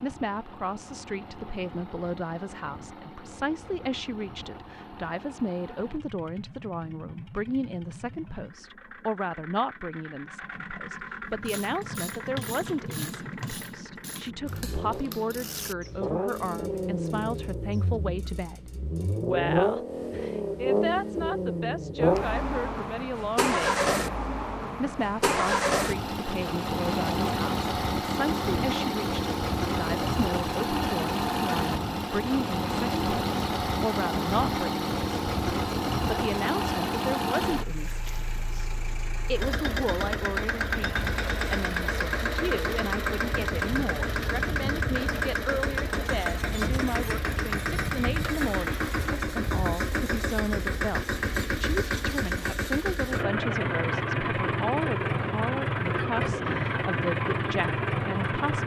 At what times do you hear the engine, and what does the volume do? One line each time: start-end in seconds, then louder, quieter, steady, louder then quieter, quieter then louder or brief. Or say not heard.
0.0-58.6 louder.